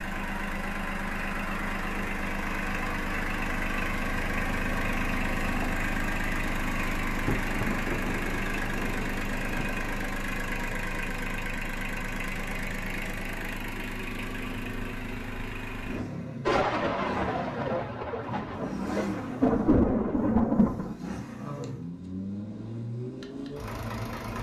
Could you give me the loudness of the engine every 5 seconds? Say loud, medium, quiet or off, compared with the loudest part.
loud, loud, loud, medium, medium.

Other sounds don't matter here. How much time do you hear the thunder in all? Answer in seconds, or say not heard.
7 s.